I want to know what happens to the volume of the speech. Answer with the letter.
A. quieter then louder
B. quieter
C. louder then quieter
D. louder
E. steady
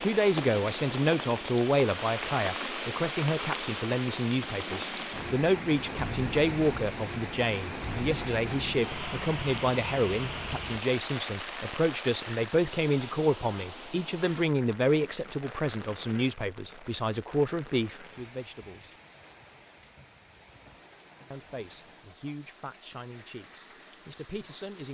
B.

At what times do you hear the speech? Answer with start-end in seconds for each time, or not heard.
0.0-18.9, 21.3-24.9.